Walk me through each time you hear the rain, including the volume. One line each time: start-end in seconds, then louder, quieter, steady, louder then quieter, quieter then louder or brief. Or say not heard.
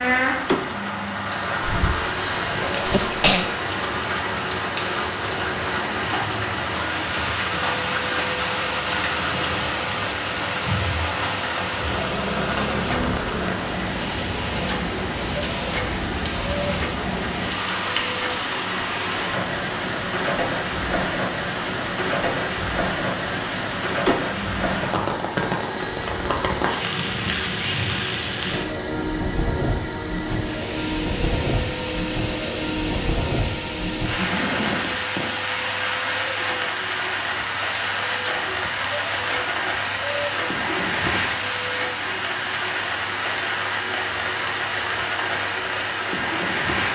0.0-46.8 steady.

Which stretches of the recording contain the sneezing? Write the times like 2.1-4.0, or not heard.
1.6-3.5.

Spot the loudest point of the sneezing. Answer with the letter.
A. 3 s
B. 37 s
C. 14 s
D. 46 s
A.